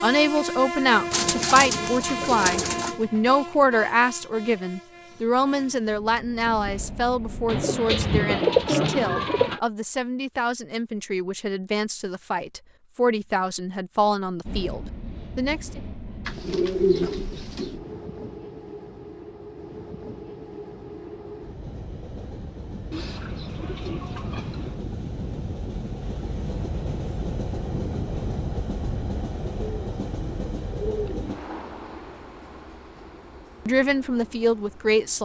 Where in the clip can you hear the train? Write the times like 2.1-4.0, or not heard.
0.0-7.7, 14.4-35.2.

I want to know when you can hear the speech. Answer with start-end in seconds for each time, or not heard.
0.0-15.8, 33.6-35.2.